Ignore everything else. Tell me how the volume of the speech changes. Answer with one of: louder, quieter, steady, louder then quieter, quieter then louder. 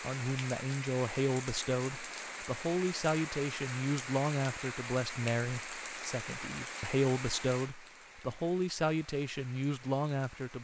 steady.